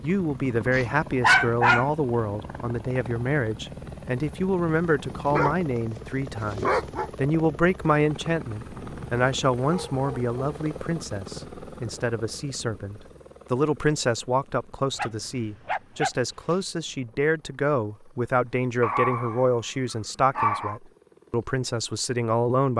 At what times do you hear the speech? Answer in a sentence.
You can hear the speech from 0.0 to 22.7 s.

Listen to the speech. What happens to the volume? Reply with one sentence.
The volume of the speech stays about the same.